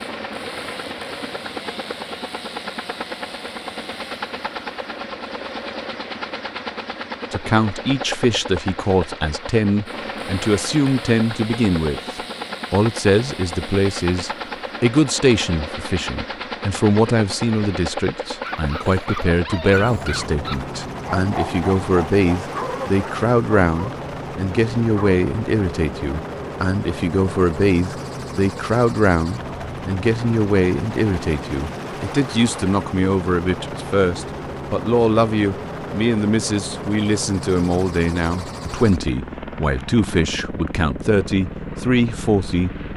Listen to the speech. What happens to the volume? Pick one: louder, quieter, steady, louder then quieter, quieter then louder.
steady.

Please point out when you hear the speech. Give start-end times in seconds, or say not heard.
7.3-42.9.